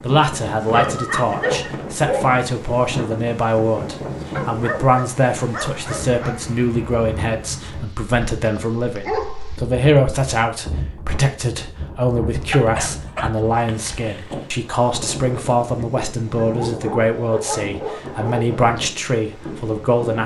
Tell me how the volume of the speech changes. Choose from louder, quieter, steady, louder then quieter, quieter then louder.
steady.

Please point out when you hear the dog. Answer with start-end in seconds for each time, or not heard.
0.7-2.4, 4.3-6.3, 8.3-9.5, 12.5-14.4, 16.4-18.4.